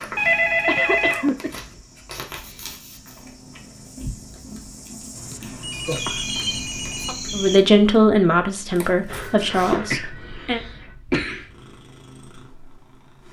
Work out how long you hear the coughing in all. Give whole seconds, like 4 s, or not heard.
4 s.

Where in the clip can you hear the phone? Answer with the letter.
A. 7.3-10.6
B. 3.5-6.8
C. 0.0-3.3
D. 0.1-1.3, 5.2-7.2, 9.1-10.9
D.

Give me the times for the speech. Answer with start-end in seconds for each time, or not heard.
7.3-10.6.